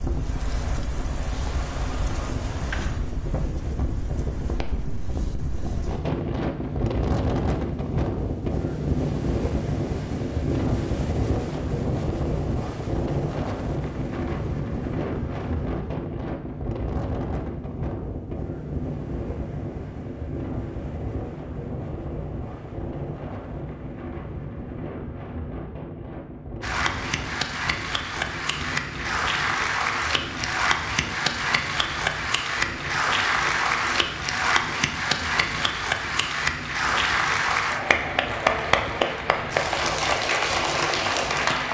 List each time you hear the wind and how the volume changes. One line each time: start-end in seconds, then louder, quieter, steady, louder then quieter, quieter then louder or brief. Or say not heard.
0.0-41.6 quieter.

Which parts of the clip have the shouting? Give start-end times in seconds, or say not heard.
not heard.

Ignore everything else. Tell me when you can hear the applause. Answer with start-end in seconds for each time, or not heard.
26.6-41.6.